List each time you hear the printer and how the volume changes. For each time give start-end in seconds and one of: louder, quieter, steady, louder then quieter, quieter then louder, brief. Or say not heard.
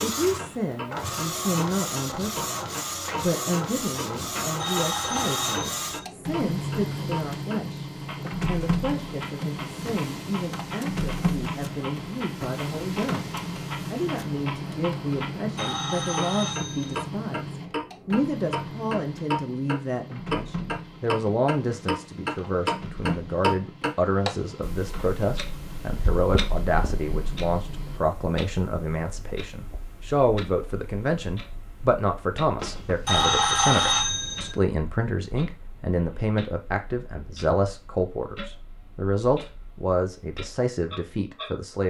0.0-28.0 quieter.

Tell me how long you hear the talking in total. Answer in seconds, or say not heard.
42 s.